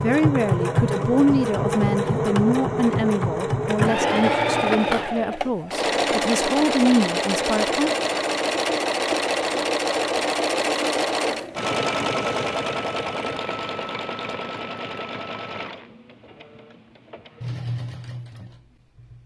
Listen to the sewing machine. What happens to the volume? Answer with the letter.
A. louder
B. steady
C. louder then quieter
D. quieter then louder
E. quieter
E.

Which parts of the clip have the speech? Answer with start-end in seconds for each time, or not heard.
0.0-7.9.